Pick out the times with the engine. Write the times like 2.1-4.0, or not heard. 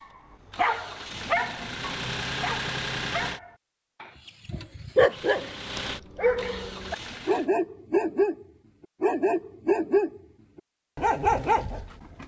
0.0-3.4, 5.1-7.5.